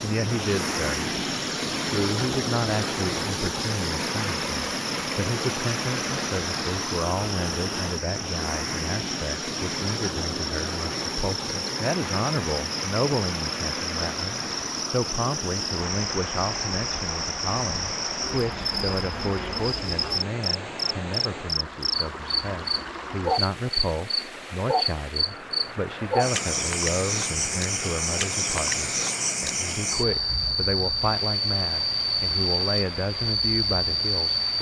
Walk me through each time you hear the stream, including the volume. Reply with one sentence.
The stream can be heard from 0.0 to 34.5 s, getting quieter.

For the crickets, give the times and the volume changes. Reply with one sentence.
You can hear the crickets from 0.0 to 34.5 s, getting louder.